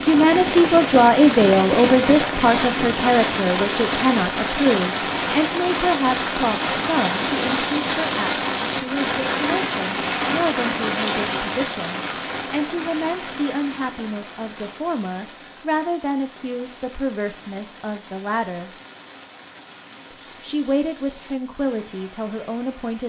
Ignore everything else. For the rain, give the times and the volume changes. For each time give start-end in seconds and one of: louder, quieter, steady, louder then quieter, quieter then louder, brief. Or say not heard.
0.0-23.0 quieter.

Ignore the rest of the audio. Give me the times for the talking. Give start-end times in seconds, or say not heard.
0.0-18.7, 20.4-23.0.